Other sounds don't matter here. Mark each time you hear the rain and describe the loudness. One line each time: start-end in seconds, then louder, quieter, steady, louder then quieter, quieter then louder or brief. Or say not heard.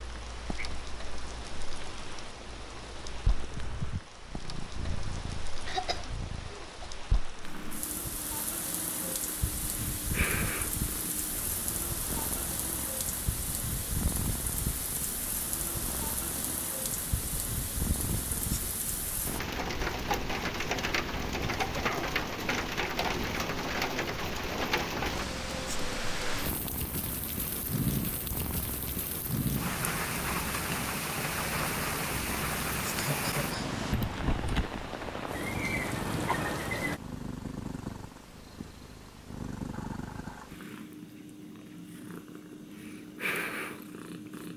0.0-37.0 louder.